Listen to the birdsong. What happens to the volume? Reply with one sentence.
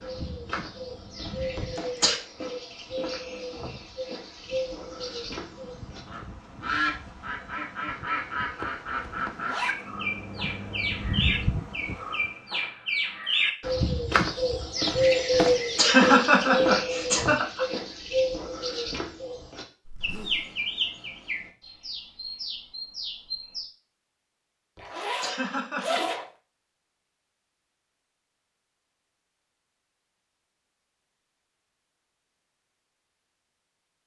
The volume of the birdsong goes up, then down.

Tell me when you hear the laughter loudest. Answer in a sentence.
The volume of the laughter peaks at 16 seconds.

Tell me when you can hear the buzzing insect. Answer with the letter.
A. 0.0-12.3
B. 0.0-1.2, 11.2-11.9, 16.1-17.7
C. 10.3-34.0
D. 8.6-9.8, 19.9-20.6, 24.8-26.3
A.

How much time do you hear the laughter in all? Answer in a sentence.
The laughter can be heard for 4 seconds in total.